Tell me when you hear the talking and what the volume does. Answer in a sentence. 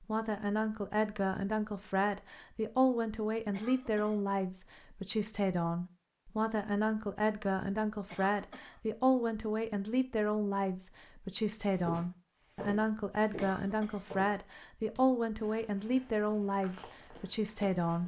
The talking can be heard from 0.0 to 18.0 s, at a steady volume.